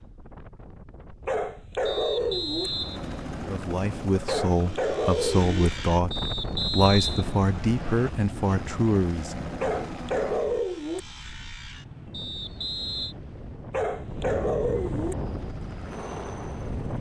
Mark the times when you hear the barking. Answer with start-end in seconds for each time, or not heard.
1.2-2.7, 4.2-5.7, 9.6-11.0, 13.7-15.2.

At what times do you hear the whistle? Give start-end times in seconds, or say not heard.
1.9-3.6, 6.1-8.1, 12.1-13.2.